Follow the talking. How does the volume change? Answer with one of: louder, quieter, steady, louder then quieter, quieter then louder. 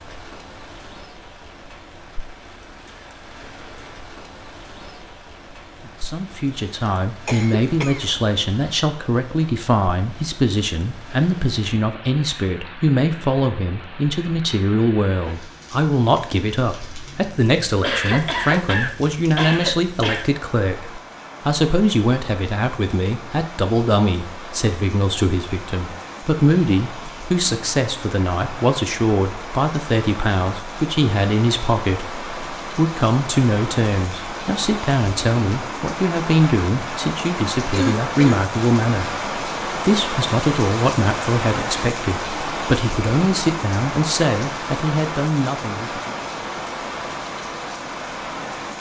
steady.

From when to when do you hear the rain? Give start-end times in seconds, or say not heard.
0.0-48.7.